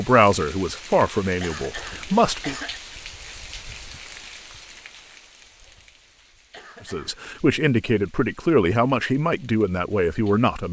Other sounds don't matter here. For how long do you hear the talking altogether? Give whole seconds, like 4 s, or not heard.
6 s.